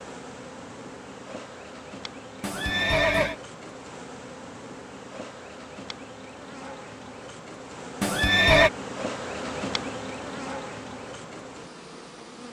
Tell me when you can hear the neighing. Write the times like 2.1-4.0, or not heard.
2.4-3.4, 8.0-8.7.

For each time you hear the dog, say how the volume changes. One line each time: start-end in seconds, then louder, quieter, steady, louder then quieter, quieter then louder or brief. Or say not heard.
not heard.